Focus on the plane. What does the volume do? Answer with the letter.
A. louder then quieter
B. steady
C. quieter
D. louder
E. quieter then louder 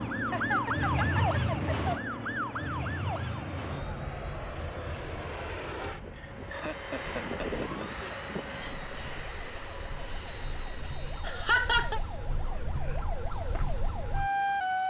A.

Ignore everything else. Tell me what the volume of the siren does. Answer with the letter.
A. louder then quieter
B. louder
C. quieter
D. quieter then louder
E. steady
D.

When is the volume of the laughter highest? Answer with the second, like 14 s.
12 s.